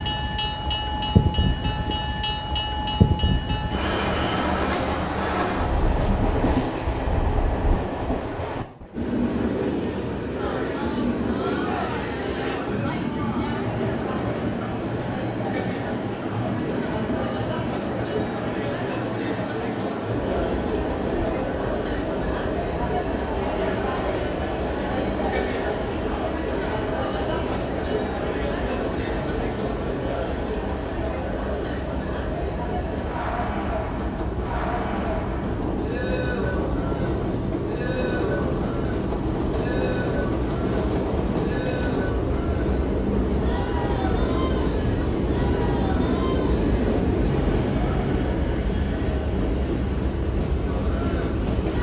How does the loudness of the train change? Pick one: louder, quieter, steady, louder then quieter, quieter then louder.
quieter then louder.